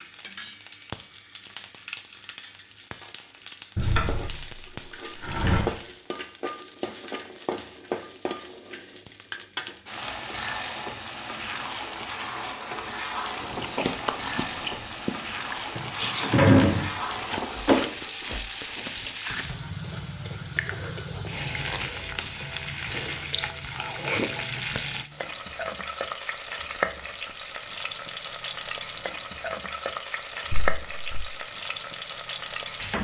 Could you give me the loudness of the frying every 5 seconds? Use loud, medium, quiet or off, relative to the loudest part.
medium, loud, loud, loud, loud, loud, loud.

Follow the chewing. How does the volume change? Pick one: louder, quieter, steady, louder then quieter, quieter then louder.
quieter then louder.